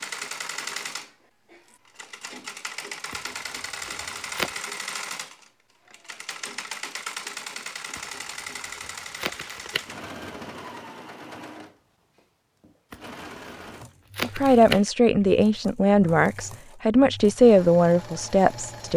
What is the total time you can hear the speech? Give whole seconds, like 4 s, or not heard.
5 s.